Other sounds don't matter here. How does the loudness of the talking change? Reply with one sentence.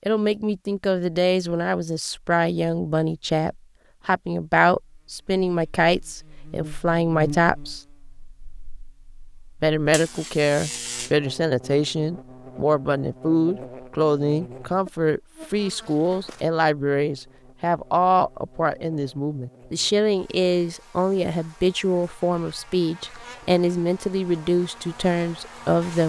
The volume of the talking stays about the same.